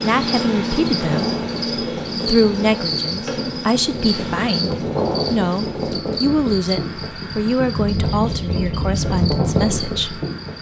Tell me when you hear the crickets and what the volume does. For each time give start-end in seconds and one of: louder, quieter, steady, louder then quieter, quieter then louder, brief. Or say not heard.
0.0-10.5 quieter.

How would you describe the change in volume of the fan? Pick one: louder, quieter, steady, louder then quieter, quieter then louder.
louder.